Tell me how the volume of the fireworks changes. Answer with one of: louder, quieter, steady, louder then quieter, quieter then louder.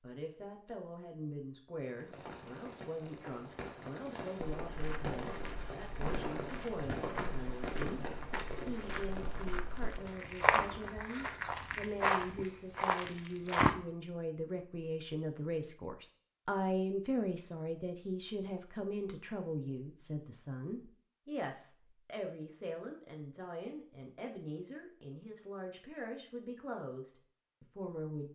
louder then quieter.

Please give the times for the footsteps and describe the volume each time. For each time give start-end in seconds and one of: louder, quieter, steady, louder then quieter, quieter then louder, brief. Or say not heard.
4.5-13.8 louder.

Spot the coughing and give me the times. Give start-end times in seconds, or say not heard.
not heard.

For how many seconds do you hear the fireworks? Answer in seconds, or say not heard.
9 s.